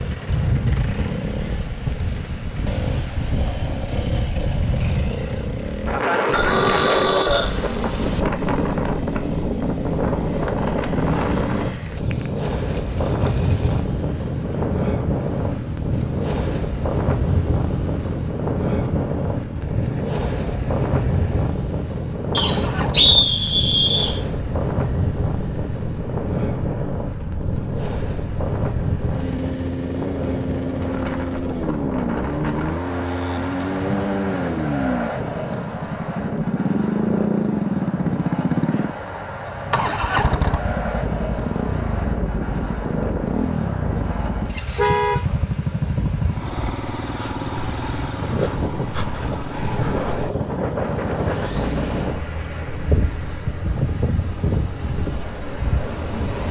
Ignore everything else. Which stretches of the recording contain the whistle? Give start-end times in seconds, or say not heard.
22.4-24.1.